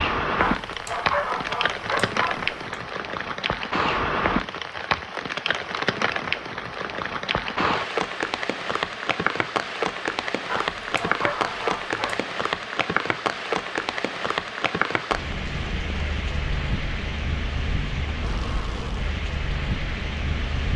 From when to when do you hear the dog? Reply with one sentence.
You can hear the dog from 0.3 to 2.8 s and from 10.4 to 12.2 s.